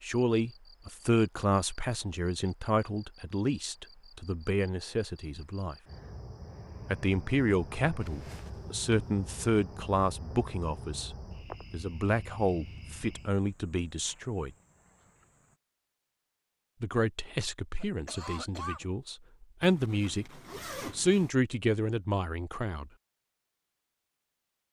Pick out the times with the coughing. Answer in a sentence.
You can hear the coughing from 17.8 to 18.9 s.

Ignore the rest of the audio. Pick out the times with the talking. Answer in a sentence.
The talking can be heard from 0.0 to 5.8 s, from 6.9 to 14.5 s and from 16.8 to 22.9 s.